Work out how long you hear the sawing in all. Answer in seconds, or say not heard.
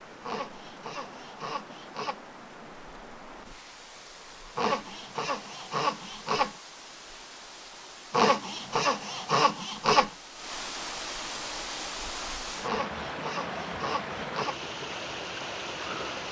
8 s.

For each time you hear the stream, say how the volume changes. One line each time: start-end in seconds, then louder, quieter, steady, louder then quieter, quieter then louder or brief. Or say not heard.
0.0-16.2 louder.